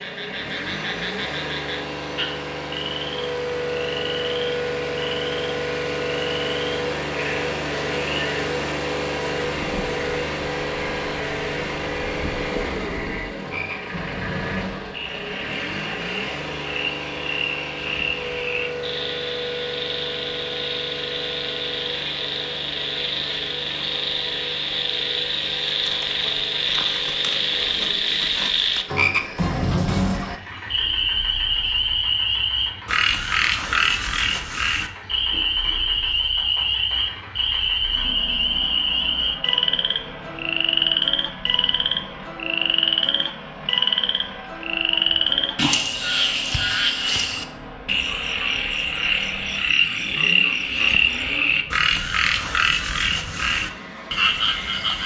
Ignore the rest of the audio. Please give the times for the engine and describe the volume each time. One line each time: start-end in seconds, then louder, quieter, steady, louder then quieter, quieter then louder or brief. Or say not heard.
0.0-55.0 quieter.